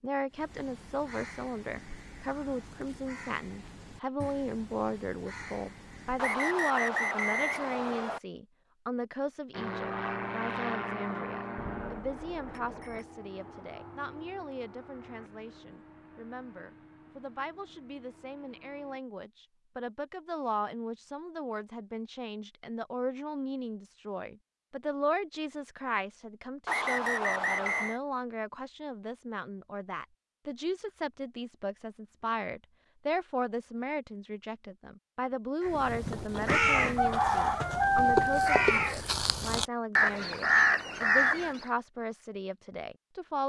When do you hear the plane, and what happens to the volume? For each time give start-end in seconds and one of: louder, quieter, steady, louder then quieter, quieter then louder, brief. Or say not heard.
9.5-19.0 quieter.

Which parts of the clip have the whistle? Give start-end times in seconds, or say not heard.
6.2-8.2, 26.6-28.0.